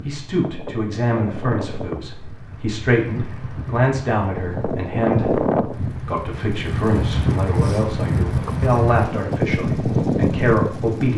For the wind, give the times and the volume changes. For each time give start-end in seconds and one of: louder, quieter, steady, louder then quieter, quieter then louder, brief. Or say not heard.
0.0-11.1 louder.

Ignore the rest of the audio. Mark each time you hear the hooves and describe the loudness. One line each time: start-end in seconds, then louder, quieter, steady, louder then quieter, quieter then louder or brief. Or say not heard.
not heard.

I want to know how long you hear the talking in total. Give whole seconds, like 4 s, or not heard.
11 s.